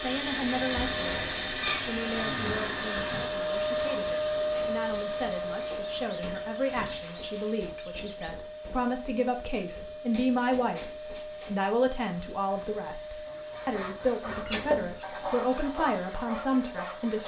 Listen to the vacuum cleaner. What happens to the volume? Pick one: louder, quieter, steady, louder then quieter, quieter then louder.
quieter.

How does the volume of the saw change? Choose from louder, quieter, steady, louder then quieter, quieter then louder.
louder then quieter.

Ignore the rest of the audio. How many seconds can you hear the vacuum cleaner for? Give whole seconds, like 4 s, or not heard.
17 s.